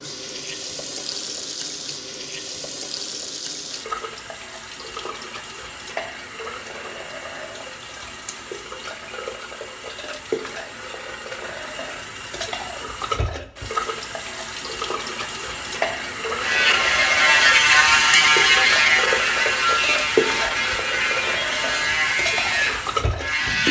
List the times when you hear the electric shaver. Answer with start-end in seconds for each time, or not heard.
16.4-23.6.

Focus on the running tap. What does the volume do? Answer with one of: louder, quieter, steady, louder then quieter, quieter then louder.
louder.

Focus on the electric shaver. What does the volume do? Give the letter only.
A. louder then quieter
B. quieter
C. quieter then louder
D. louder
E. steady
B.